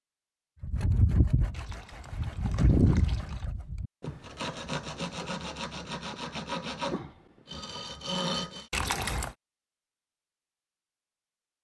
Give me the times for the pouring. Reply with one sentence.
The pouring can be heard from 1.5 to 3.5 s and from 8.7 to 9.3 s.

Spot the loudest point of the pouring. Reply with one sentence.
The loudest moment of the pouring is at 9 seconds.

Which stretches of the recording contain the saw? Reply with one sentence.
You can hear the saw from 0.6 to 8.7 s.